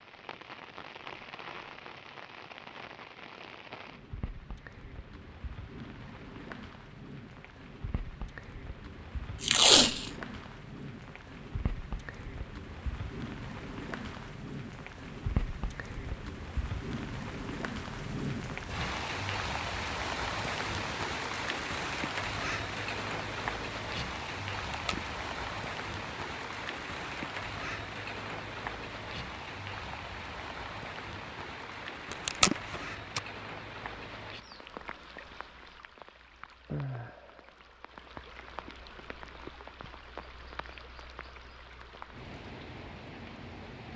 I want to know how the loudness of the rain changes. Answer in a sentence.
The volume of the rain goes up, then down.